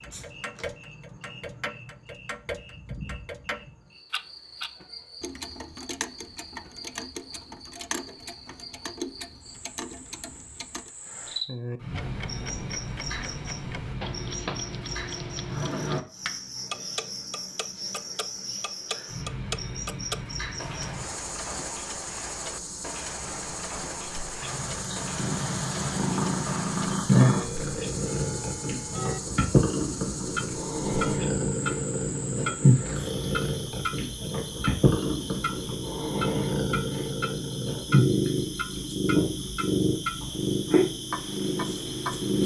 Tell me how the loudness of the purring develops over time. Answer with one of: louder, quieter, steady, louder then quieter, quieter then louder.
steady.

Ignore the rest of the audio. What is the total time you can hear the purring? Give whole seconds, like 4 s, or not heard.
18 s.